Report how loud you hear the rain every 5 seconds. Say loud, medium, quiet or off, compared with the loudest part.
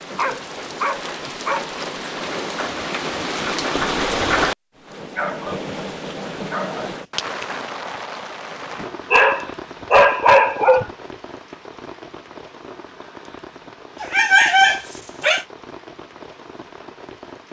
loud, medium, quiet, quiet.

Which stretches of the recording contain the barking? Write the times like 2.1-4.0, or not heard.
0.1-1.8, 5.2-5.6, 6.5-6.9, 8.8-10.9, 14.0-15.4.